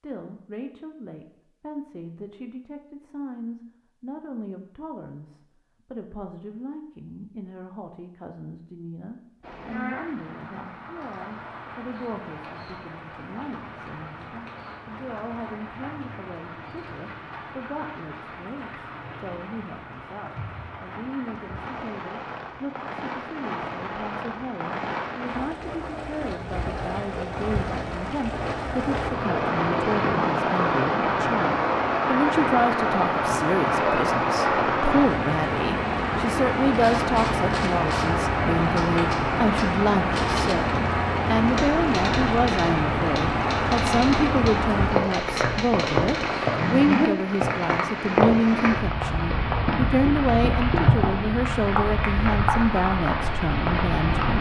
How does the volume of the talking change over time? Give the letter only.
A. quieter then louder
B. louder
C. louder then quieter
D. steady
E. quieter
B.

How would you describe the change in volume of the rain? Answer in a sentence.
The loudness of the rain goes up.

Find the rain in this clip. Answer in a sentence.
The rain can be heard from 9.4 to 54.3 s.